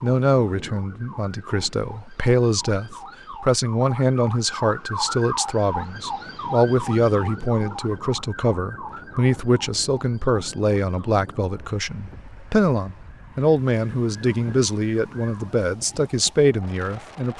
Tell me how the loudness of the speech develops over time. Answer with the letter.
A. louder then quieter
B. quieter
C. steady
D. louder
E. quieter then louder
C.